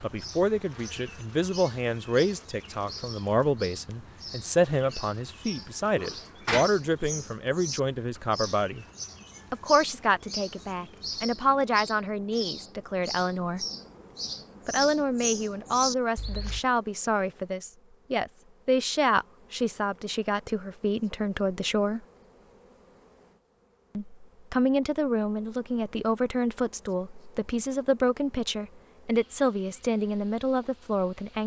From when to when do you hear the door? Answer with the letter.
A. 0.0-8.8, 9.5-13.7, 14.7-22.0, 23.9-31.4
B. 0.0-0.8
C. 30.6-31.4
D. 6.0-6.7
D.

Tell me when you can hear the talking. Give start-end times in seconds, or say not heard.
0.0-8.8, 9.5-13.7, 14.7-22.0, 23.9-31.4.